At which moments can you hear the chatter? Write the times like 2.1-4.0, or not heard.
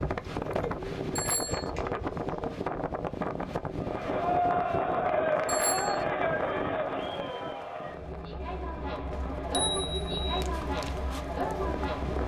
3.8-12.2.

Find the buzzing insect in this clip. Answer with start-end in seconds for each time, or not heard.
not heard.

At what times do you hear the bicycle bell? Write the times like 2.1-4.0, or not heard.
1.1-1.7, 5.5-6.0, 9.1-10.4.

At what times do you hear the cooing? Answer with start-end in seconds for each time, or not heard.
0.0-2.6.